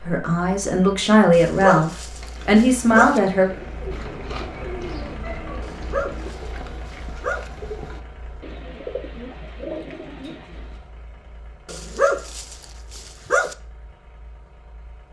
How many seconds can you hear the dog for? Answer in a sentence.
You can hear the dog for 6 seconds altogether.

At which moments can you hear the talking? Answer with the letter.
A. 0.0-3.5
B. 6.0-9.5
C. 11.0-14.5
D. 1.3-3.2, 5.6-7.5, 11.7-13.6
A.